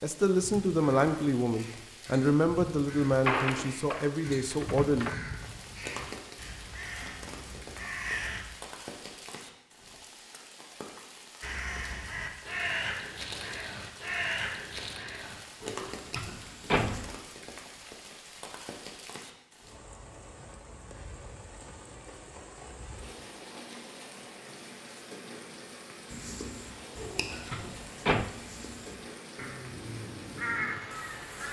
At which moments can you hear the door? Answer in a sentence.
You can hear the door from 3.0 to 5.2 s, from 15.6 to 17.1 s and from 26.9 to 28.3 s.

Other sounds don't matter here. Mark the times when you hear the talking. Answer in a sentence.
The talking can be heard from 0.0 to 5.1 s.